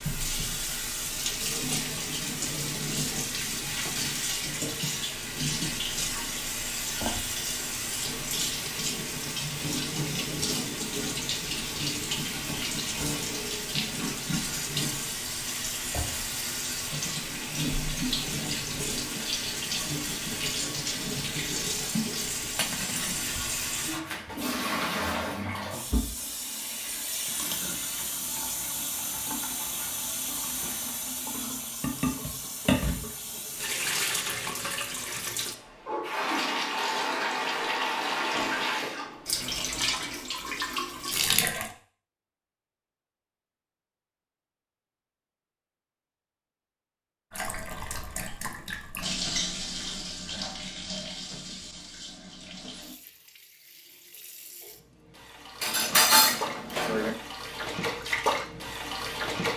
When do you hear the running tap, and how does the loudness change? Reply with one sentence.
You can hear the running tap from 0.0 to 41.8 s, at a steady volume; and from 47.3 to 59.5 s, getting quieter then louder.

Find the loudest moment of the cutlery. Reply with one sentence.
The volume of the cutlery peaks at 56 seconds.